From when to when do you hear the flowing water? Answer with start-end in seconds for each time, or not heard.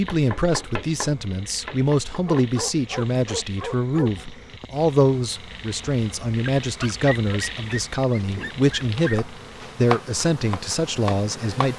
not heard.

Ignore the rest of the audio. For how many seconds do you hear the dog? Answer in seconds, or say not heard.
5 s.